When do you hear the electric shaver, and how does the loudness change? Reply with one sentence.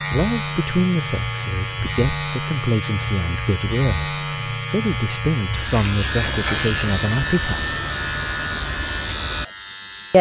The electric shaver can be heard from 0.0 to 10.1 s, at a steady volume.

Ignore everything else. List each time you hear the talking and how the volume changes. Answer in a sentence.
The talking can be heard from 0.1 to 7.8 s, at a steady volume.